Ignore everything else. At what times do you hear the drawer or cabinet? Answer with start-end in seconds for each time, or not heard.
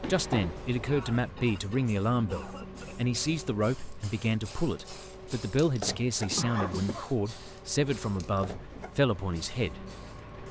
0.0-0.6, 6.3-7.0.